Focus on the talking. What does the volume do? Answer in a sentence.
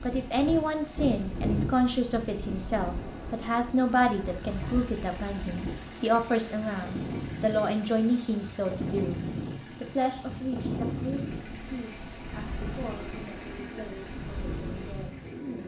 The loudness of the talking goes down.